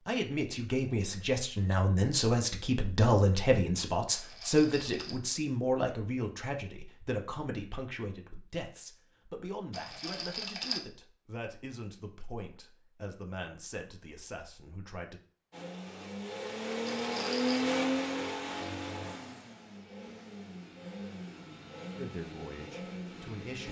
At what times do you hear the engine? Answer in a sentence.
The engine can be heard from 15.5 to 23.6 s.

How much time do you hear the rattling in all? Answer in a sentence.
The rattling can be heard for 3 seconds in total.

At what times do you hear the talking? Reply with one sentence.
The talking can be heard from 0.1 to 15.2 s and from 21.9 to 23.6 s.